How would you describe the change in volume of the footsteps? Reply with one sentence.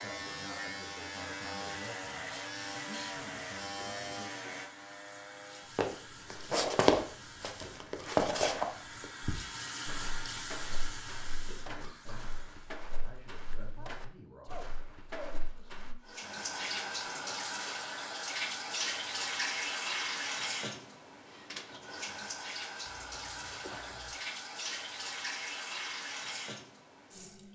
The loudness of the footsteps goes down.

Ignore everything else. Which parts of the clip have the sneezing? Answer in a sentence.
The sneezing can be heard from 2.3 to 3.1 s, from 13.8 to 15.3 s and from 22.9 to 24.1 s.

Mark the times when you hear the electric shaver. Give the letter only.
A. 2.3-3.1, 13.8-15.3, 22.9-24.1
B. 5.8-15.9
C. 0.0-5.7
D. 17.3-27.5
C.